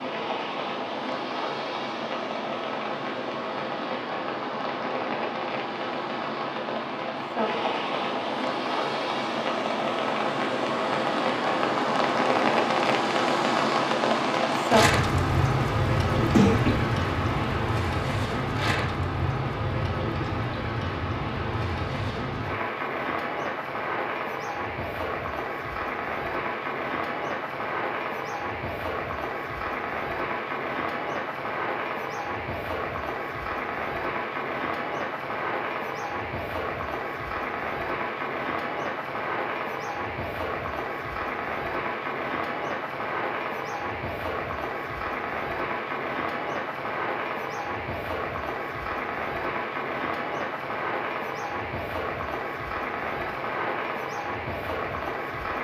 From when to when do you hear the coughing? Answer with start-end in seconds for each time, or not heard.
16.1-16.9.